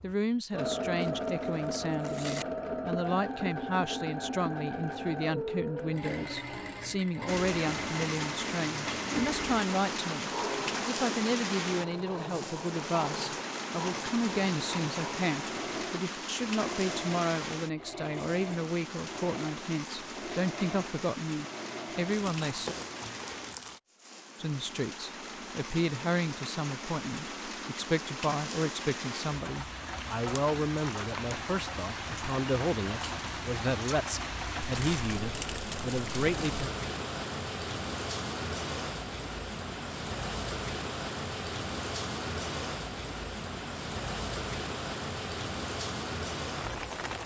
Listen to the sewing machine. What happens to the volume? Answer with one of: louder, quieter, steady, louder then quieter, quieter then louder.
quieter.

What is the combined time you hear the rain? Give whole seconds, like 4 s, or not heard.
40 s.